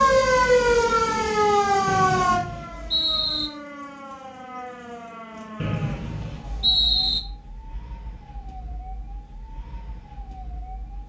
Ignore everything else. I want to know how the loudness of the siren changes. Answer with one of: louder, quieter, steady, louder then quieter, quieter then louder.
quieter.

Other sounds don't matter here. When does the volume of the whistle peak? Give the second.
7 s.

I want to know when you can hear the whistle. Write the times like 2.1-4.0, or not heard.
1.9-3.5, 5.6-7.2.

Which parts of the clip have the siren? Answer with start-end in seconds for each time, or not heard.
0.0-11.0.